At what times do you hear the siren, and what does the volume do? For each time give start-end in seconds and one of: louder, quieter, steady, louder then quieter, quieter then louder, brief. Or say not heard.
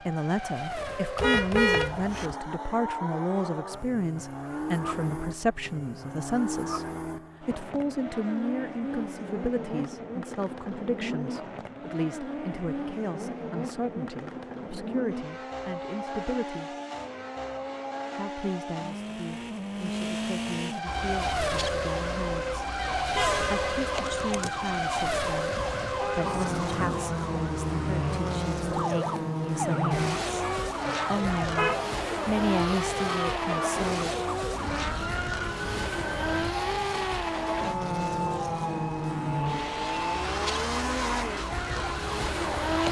20.9-42.8 steady.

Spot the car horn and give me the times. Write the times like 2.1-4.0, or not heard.
1.1-2.4, 23.1-24.1, 30.9-31.9.